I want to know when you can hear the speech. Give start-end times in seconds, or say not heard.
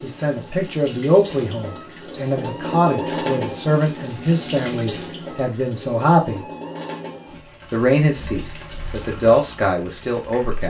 0.0-6.5, 7.7-10.6.